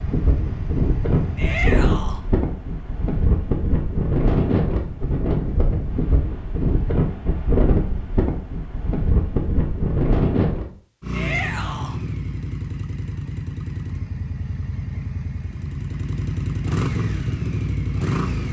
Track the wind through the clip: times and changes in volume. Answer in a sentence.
You can hear the wind from 0.0 to 10.7 s, at a steady volume.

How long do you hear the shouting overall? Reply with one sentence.
The shouting can be heard for 2 seconds in total.